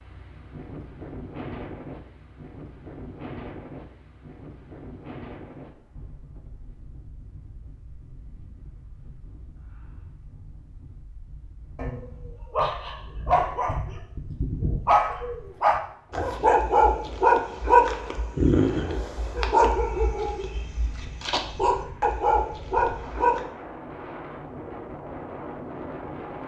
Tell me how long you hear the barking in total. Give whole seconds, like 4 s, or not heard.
12 s.